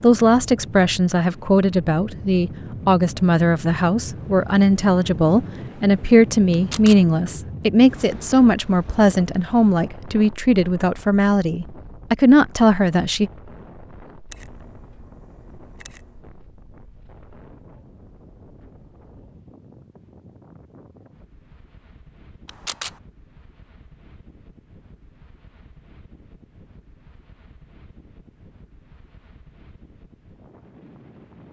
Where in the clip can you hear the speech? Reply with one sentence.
The speech can be heard from 0.0 to 13.3 s.